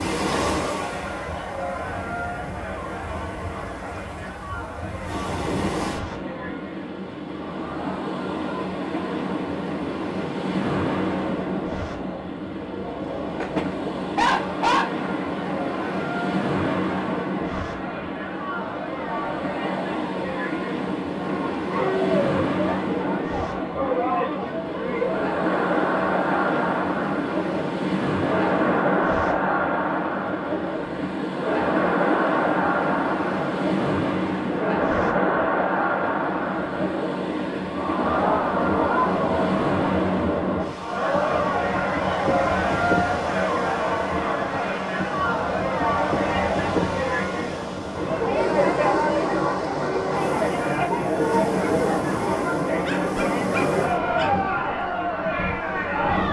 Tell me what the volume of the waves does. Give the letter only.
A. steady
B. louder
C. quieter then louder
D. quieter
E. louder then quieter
A.